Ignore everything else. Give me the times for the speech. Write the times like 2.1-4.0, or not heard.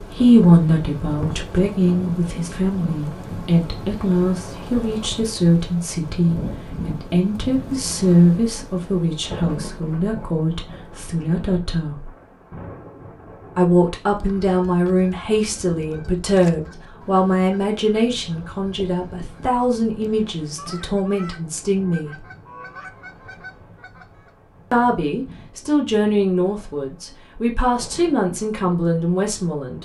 0.0-12.1, 13.6-22.1, 24.7-29.8.